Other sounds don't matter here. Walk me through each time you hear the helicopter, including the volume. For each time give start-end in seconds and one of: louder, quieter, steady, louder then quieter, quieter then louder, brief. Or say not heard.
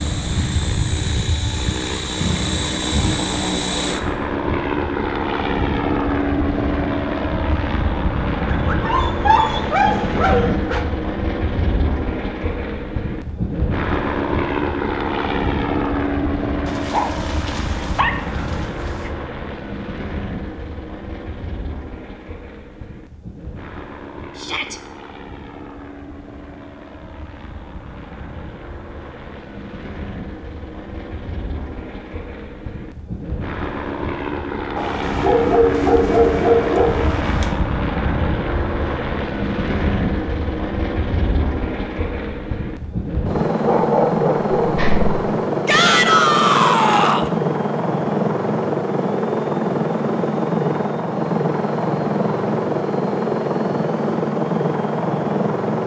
0.0-55.8 quieter then louder.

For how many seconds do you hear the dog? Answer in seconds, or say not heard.
9 s.